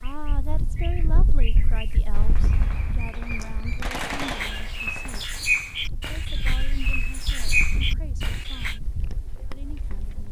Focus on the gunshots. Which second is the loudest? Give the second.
4 s.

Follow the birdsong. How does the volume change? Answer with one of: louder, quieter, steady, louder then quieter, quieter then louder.
louder.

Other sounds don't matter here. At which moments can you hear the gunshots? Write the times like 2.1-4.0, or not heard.
2.1-5.2.